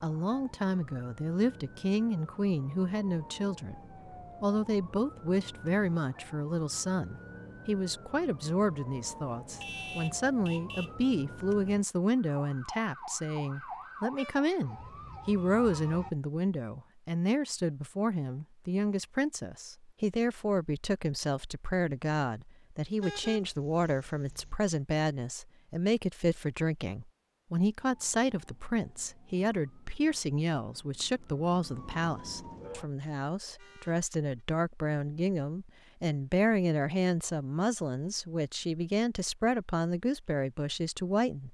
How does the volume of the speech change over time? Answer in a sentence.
The volume of the speech stays about the same.